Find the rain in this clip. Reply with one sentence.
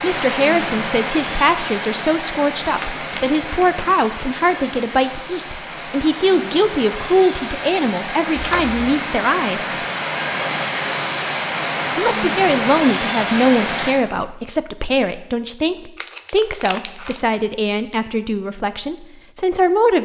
You can hear the rain from 0.0 to 13.9 s.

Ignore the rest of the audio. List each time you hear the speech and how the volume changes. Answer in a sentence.
You can hear the speech from 0.0 to 9.8 s, at a steady volume; and from 11.9 to 19.9 s, getting quieter.